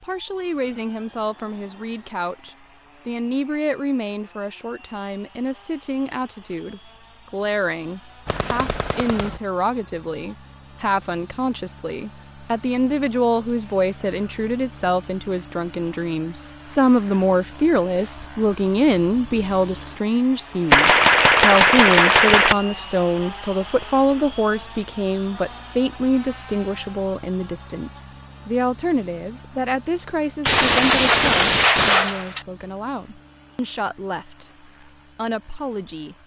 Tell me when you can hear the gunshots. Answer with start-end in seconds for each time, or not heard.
8.2-9.4, 20.7-22.6, 30.4-32.4.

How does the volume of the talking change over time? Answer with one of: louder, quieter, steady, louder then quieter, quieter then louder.
louder then quieter.